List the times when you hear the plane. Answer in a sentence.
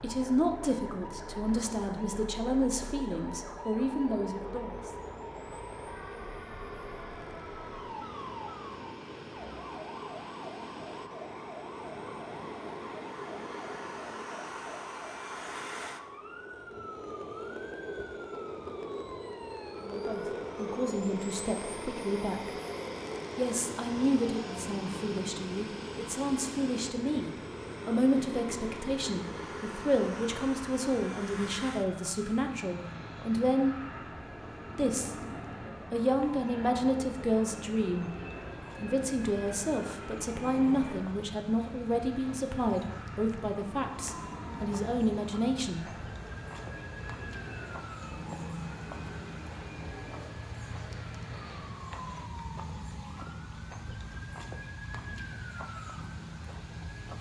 You can hear the plane from 0.0 to 52.2 s.